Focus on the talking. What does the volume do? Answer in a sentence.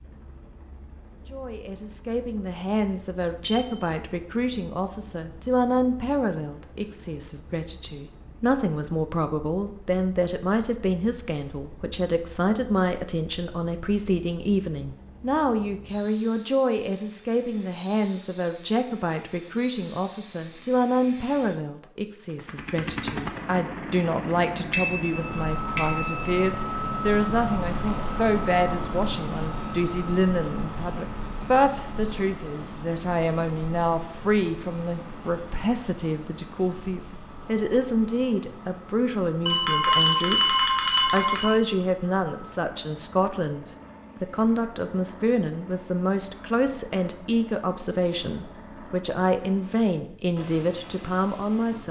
The loudness of the talking stays about the same.